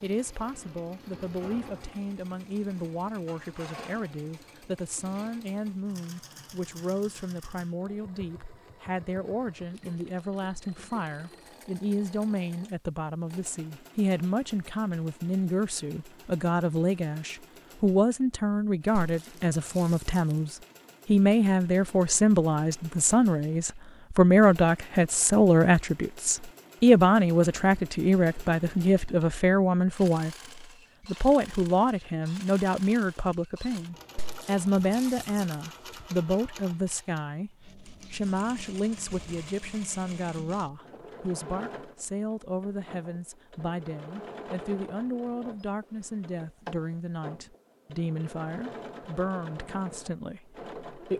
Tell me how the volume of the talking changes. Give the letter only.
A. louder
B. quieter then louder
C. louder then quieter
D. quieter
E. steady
C.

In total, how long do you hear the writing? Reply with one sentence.
The writing can't be heard in this clip.